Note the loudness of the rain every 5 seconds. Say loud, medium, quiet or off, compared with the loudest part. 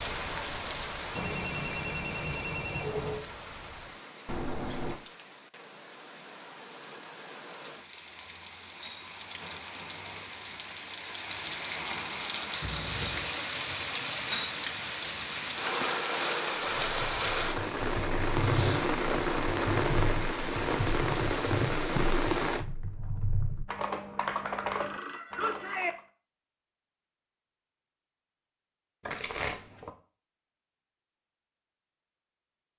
medium, quiet, loud, loud, loud, off, off.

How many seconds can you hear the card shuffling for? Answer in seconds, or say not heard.
2 s.